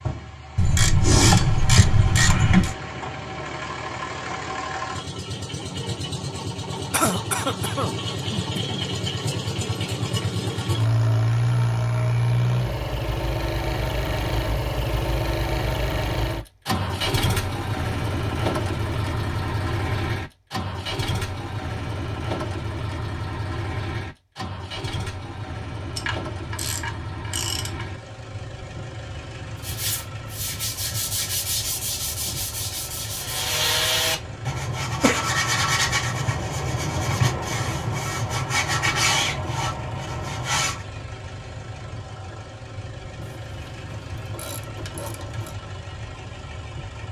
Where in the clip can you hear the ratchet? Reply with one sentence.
The ratchet can be heard from 0.6 to 2.8 s, from 25.9 to 27.9 s and from 43.5 to 45.5 s.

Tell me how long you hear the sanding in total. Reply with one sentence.
You can hear the sanding for 11 seconds altogether.